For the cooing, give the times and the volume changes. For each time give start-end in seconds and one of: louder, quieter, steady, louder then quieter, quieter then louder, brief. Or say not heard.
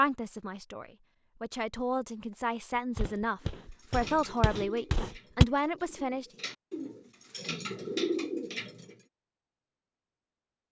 3.9-8.9 quieter then louder.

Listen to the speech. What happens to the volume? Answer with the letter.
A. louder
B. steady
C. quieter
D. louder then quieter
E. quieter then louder
A.